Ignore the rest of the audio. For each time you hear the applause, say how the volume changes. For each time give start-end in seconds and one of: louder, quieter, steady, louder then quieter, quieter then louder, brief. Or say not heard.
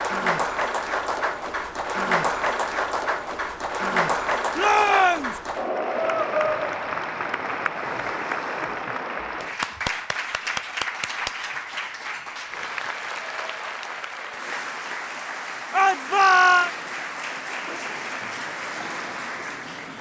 0.0-19.9 quieter.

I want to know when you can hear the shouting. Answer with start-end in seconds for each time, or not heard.
4.5-5.4, 15.7-16.7.